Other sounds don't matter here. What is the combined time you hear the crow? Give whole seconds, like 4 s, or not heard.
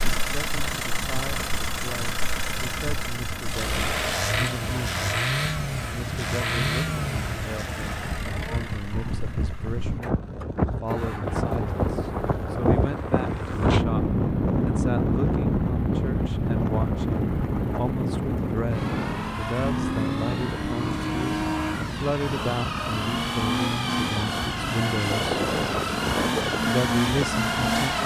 not heard.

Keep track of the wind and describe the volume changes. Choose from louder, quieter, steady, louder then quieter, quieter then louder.
louder then quieter.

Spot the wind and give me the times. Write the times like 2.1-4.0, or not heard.
0.0-28.0.